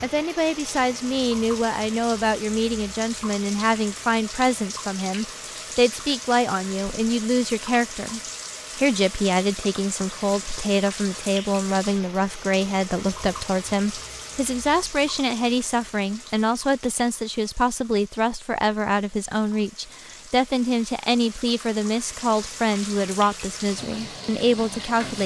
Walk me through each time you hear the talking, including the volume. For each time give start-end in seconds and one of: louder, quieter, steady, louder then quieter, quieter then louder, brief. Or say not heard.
0.0-25.2 steady.